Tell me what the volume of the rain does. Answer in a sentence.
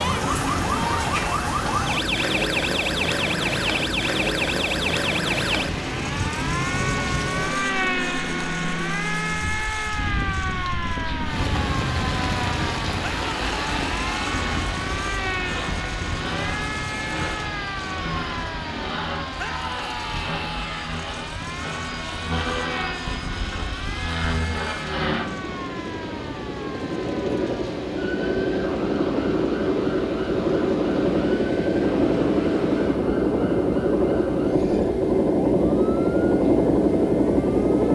The volume of the rain goes down.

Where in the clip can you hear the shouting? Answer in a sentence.
The shouting can be heard from 13.0 to 14.4 s and from 19.4 to 21.0 s.